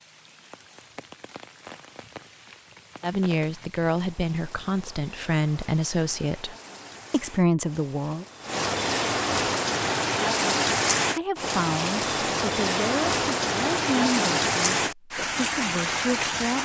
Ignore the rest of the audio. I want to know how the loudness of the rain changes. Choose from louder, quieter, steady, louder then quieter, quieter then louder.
louder.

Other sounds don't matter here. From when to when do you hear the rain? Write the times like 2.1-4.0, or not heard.
0.0-16.6.